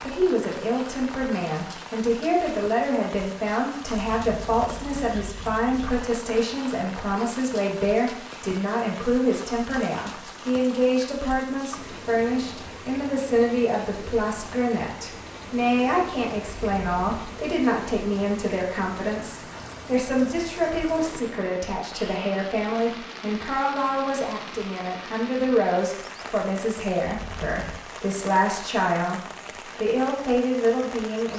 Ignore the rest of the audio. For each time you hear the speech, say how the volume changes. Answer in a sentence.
The speech can be heard from 0.0 to 31.3 s, at a steady volume.